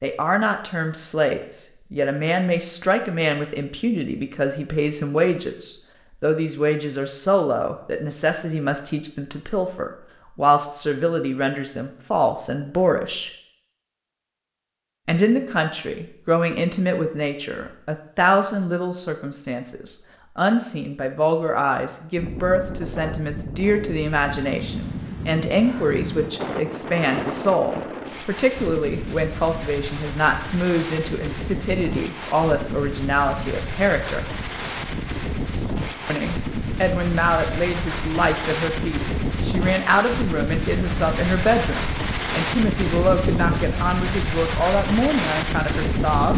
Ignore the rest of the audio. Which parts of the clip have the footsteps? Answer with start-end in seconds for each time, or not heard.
not heard.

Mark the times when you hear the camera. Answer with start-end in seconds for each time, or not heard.
not heard.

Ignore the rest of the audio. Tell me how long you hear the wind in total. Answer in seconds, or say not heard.
24 s.